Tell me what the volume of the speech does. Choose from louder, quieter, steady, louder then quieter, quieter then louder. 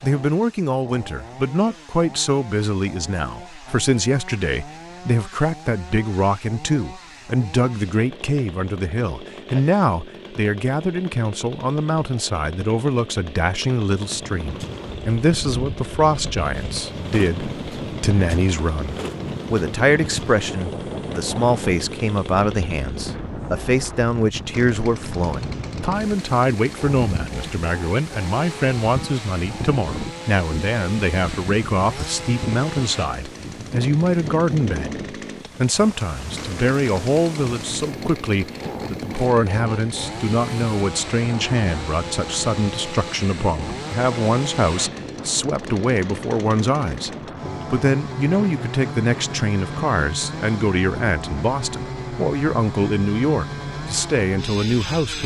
steady.